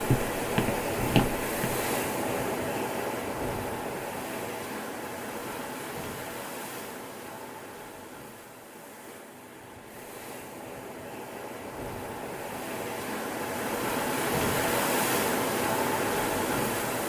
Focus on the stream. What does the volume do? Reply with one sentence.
The loudness of the stream goes down, then up.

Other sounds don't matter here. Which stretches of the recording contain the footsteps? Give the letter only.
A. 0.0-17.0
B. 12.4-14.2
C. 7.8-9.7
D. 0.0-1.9
D.